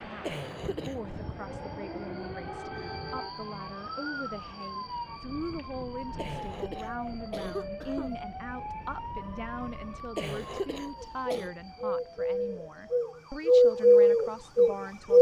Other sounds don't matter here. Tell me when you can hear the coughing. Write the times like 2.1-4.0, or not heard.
0.2-1.0, 6.2-8.2, 10.2-11.5.